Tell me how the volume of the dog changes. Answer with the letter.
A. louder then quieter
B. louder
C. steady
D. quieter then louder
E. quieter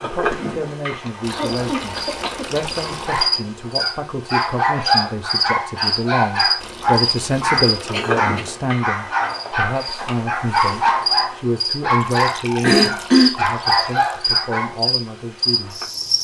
C.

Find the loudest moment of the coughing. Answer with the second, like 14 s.
13 s.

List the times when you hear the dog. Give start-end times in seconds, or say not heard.
2.9-14.9.